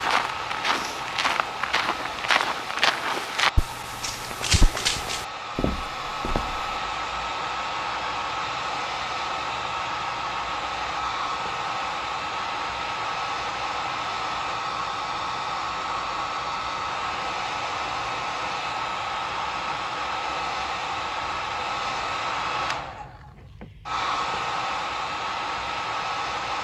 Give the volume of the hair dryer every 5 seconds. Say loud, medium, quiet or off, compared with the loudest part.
medium, loud, loud, loud, loud, loud.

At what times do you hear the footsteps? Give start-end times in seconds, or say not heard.
0.0-6.7.